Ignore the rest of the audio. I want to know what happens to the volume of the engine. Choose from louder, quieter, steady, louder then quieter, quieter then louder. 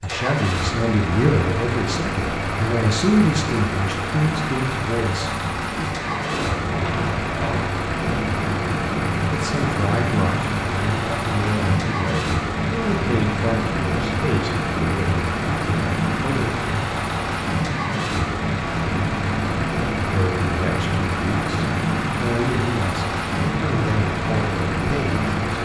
steady.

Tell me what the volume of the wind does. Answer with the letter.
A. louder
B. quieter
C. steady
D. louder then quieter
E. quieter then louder
C.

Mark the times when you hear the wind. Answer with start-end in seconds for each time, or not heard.
6.0-25.6.